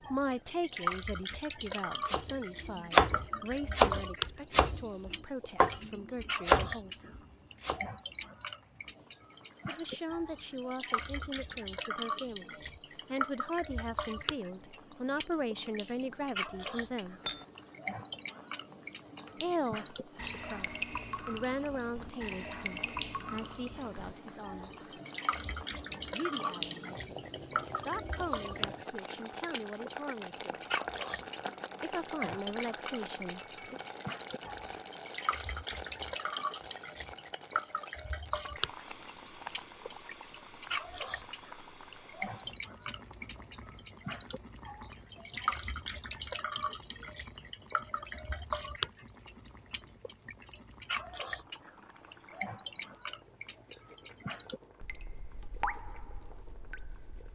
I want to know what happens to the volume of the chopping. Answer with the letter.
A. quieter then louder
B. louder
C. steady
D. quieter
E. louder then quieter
A.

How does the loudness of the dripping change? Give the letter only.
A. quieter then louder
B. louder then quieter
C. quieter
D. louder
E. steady
E.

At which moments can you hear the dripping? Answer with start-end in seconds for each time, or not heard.
0.0-57.3.